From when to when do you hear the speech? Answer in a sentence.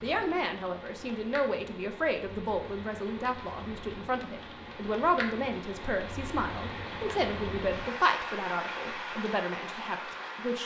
You can hear the speech from 0.0 to 10.6 s.